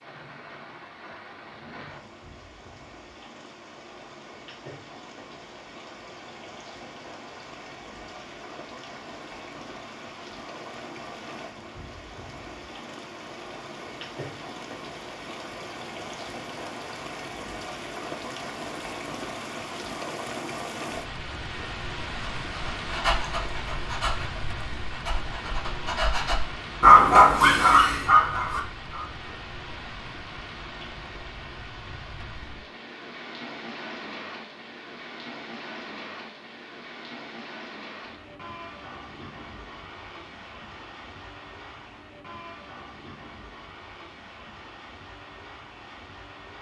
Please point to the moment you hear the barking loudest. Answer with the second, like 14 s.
27 s.